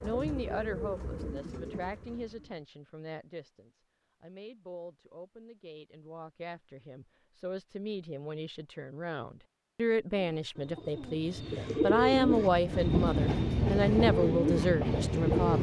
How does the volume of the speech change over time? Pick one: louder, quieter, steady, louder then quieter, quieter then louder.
quieter then louder.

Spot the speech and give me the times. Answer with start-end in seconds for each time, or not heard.
0.0-15.5.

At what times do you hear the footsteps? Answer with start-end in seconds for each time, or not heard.
not heard.